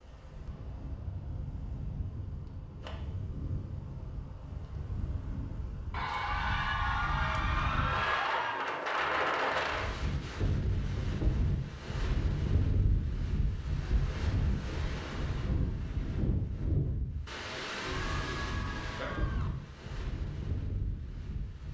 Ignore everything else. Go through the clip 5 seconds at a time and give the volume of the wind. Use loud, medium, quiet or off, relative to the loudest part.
medium, loud, loud, loud, medium.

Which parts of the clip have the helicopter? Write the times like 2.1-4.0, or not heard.
not heard.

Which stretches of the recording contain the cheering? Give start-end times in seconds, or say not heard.
5.9-8.7, 17.9-19.5.